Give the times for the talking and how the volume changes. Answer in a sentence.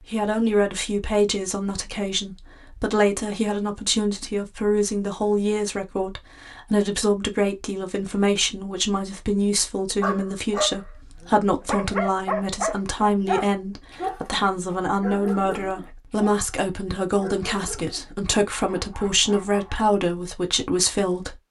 The talking can be heard from 0.0 to 21.4 s, at a steady volume.